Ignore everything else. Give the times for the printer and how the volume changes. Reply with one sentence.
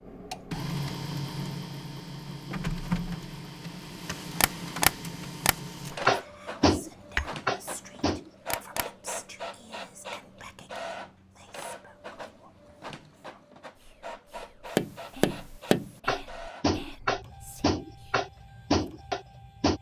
You can hear the printer from 0.0 to 19.7 s, getting quieter.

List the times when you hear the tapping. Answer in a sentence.
The tapping can be heard from 4.4 to 8.8 s and from 14.8 to 19.7 s.